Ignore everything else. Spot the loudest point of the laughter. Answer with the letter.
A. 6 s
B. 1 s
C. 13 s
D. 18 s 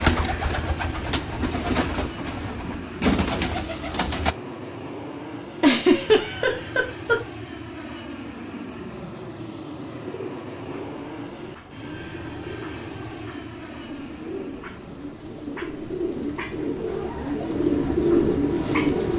A.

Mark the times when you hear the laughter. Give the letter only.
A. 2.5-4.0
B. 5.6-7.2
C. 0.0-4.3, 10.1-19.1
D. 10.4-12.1
B.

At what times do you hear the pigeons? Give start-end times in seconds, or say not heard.
0.0-4.3, 10.1-19.1.